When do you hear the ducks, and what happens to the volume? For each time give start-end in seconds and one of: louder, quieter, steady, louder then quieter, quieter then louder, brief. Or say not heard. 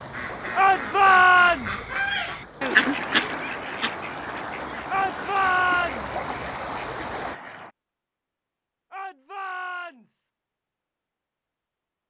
0.1-7.7 louder then quieter.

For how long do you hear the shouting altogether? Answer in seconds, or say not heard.
4 s.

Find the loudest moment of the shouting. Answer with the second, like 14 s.
1 s.